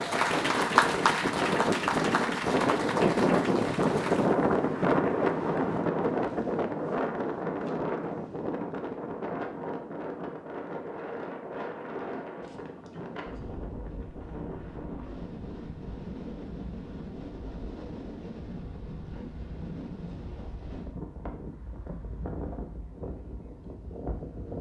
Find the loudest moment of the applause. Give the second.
1 s.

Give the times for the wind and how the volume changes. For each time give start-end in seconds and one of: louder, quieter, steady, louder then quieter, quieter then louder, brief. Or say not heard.
0.0-24.5 quieter.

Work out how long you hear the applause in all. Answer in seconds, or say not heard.
4 s.